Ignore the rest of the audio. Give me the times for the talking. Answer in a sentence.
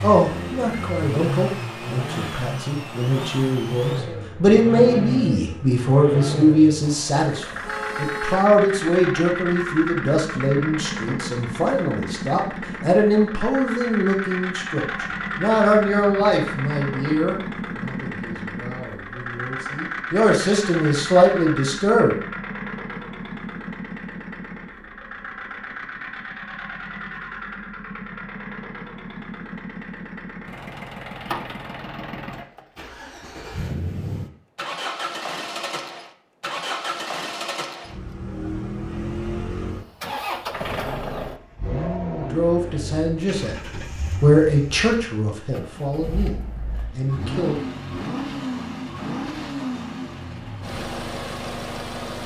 The talking can be heard from 0.0 to 22.1 s and from 42.2 to 47.6 s.